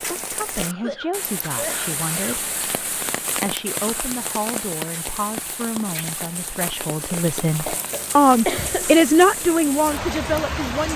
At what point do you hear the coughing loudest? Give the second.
9 s.